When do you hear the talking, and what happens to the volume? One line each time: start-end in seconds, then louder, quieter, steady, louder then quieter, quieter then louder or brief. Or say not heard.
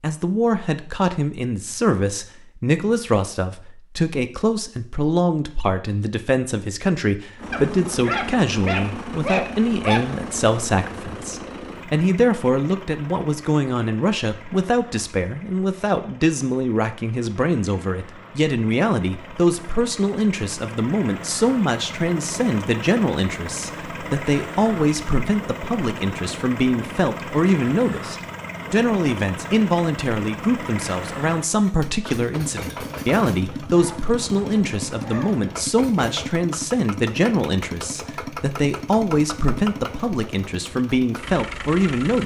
0.0-42.2 steady.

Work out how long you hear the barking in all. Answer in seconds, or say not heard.
5 s.